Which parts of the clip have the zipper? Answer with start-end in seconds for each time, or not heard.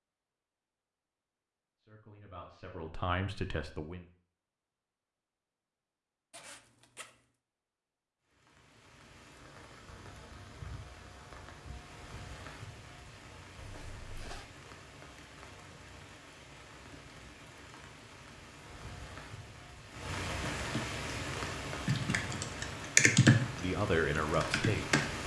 6.3-7.2, 13.6-14.4.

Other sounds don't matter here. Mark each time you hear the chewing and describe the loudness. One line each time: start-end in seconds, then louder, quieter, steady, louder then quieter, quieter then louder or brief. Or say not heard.
not heard.